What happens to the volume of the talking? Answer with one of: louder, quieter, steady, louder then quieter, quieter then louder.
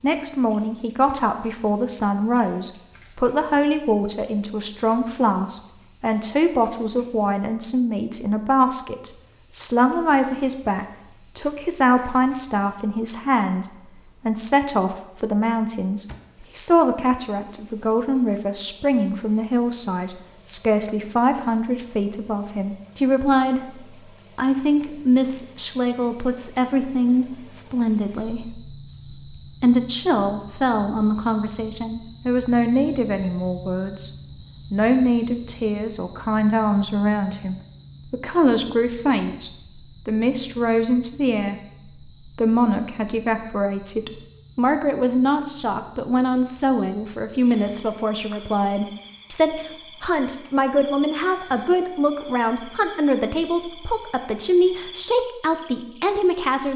steady.